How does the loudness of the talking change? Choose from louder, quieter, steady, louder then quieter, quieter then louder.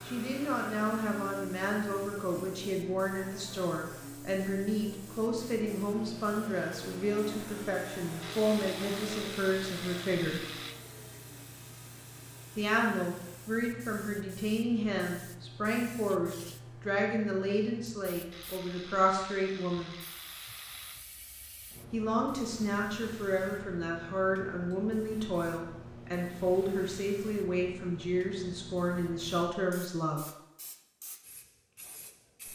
steady.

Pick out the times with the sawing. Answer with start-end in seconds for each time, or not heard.
not heard.